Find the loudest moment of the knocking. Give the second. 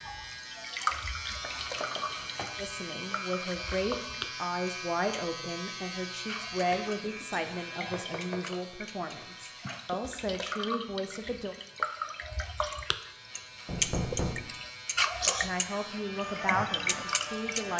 14 s.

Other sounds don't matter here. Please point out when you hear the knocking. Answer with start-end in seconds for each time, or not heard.
1.4-2.5, 7.9-8.6, 13.7-14.4.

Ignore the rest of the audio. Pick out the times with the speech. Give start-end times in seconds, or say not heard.
2.5-11.6, 15.2-17.7.